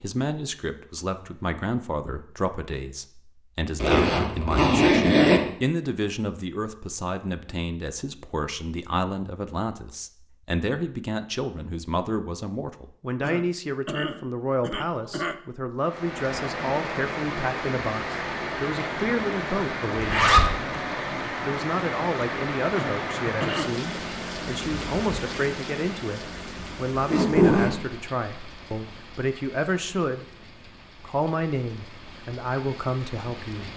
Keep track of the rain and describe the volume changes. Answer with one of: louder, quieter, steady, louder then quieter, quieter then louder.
quieter.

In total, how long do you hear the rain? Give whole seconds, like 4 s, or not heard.
18 s.